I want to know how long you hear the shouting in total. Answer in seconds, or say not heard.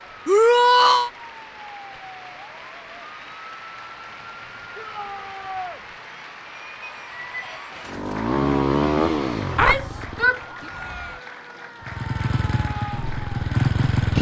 3 s.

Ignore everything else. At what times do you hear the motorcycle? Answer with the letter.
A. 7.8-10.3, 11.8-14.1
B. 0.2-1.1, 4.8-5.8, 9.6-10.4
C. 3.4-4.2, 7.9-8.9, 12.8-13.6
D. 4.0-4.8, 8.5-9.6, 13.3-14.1
A.